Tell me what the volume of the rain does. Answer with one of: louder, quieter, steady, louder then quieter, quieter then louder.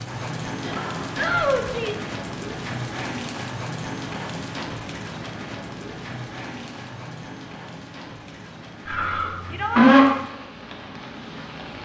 quieter.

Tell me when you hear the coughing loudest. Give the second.
10 s.